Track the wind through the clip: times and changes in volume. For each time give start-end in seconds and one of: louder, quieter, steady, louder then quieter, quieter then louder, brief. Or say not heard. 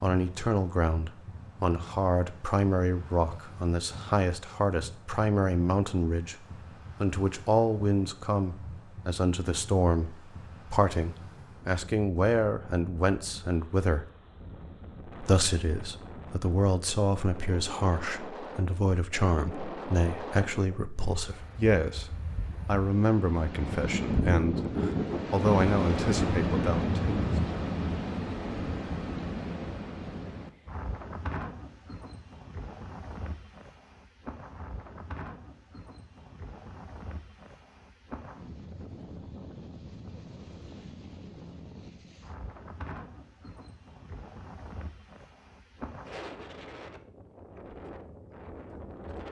0.1-49.2 louder then quieter.